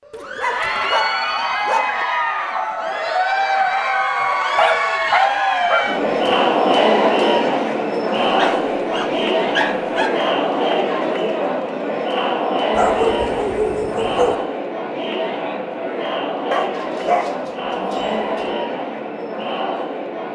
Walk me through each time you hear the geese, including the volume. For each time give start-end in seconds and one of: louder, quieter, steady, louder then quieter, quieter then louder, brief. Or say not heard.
not heard.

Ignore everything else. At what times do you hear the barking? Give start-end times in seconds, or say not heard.
0.1-2.0, 4.5-6.3, 8.2-10.2, 12.8-14.3, 16.5-18.6.